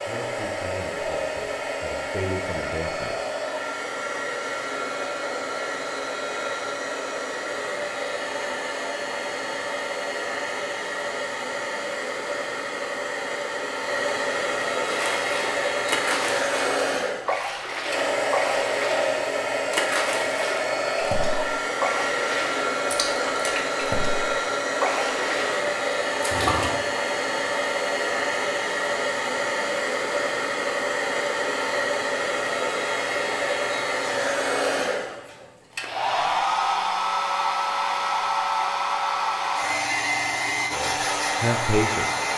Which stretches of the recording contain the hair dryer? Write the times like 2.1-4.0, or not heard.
0.0-42.3.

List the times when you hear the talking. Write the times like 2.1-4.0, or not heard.
0.1-3.1, 40.7-42.2.